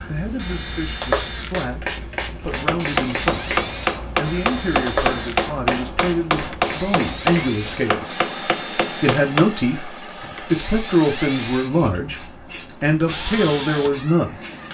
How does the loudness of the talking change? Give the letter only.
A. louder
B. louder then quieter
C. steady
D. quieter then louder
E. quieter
A.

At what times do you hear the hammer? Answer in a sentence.
The hammer can be heard from 2.5 to 9.5 s.